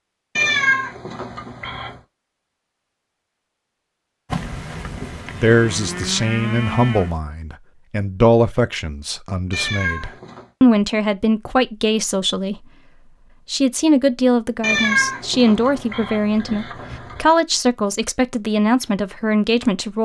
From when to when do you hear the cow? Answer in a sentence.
You can hear the cow from 4.3 to 7.2 s.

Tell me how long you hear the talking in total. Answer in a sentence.
The talking can be heard for 14 seconds in total.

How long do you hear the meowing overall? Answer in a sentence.
The meowing can be heard for 5 seconds in total.